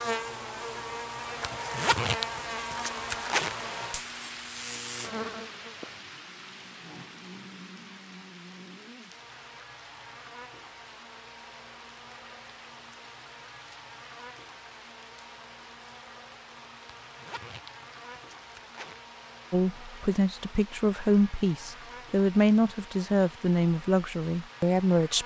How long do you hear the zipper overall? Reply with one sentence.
The zipper can be heard for 4 seconds in total.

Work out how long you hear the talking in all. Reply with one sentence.
You can hear the talking for 6 seconds altogether.